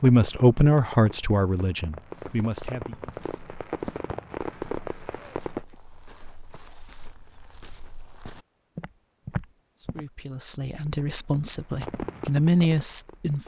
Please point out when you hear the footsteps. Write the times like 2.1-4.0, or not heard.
2.1-10.1.